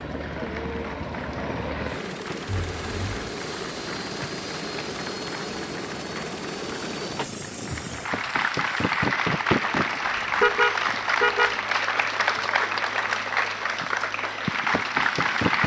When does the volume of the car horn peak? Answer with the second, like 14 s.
11 s.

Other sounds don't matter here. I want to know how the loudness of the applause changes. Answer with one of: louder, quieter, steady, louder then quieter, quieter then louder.
louder.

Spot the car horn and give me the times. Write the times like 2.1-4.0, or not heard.
2.5-3.3, 10.4-11.6.